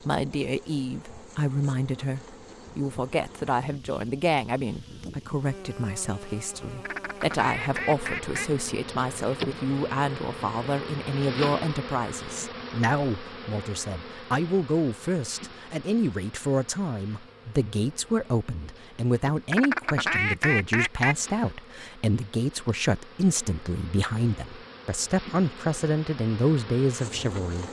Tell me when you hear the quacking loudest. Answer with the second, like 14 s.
20 s.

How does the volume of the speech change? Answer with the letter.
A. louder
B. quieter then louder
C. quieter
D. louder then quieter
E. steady
E.